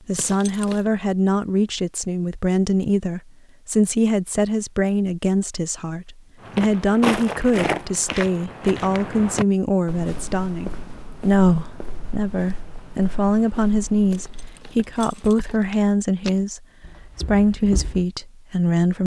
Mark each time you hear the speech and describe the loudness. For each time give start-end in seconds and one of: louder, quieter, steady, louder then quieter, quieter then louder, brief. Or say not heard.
0.1-19.0 steady.